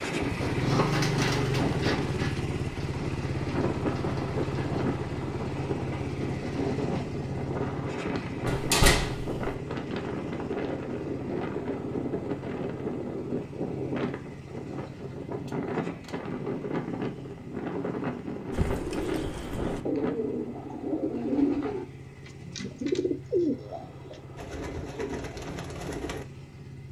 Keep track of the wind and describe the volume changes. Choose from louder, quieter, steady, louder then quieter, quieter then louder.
steady.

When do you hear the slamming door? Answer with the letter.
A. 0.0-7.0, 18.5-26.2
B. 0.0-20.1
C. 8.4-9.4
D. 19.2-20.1
C.